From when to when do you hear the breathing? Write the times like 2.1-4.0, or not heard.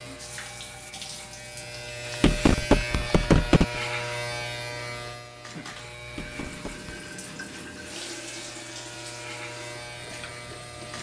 not heard.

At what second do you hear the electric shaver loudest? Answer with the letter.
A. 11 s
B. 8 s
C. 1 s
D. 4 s
D.